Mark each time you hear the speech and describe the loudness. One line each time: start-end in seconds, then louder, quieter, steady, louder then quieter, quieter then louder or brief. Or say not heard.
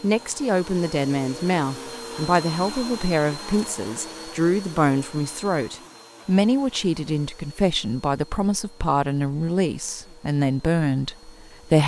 0.0-11.8 steady.